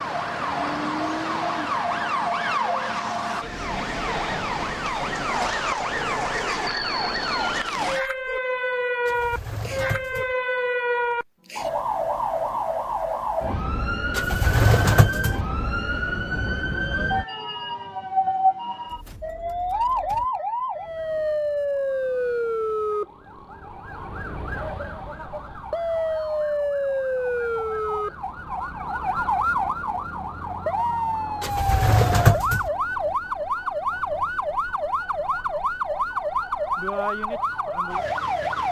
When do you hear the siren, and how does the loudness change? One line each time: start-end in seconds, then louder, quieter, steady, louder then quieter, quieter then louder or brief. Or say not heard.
0.0-38.6 steady.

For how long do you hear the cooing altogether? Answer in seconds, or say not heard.
4 s.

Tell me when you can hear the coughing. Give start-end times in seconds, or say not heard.
not heard.